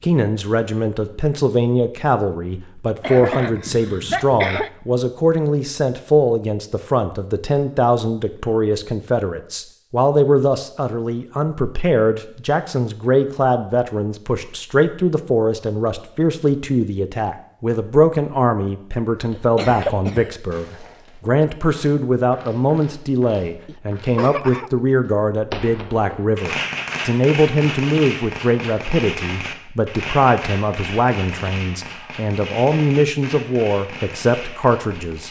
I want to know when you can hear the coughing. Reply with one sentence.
The coughing can be heard from 3.0 to 4.7 s, from 19.4 to 20.3 s and from 23.6 to 24.7 s.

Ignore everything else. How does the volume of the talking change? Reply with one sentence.
The loudness of the talking stays about the same.